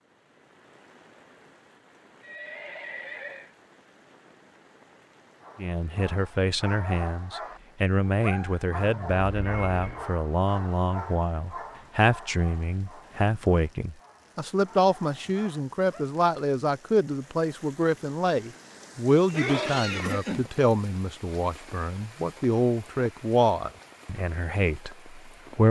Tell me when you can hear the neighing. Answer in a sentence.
The neighing can be heard from 2.2 to 3.5 s, from 8.8 to 10.1 s and from 19.2 to 20.5 s.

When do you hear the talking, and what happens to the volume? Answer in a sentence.
The talking can be heard from 5.5 to 25.6 s, at a steady volume.